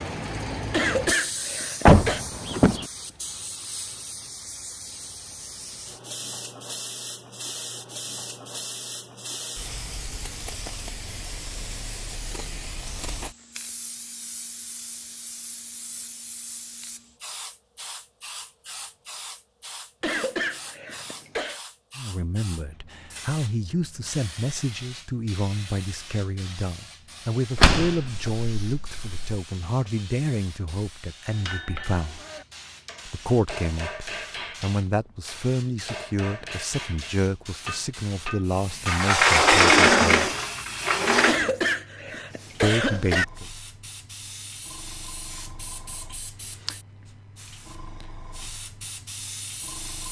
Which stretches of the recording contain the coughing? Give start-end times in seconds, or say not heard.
0.7-2.2, 20.0-21.6, 41.2-43.2.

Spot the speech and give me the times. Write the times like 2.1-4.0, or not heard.
21.9-32.2, 33.0-40.3, 42.6-43.5.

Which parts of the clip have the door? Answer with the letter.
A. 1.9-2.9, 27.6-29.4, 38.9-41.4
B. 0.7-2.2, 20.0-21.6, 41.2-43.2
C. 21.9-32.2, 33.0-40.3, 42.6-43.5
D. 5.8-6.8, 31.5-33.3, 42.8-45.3
A.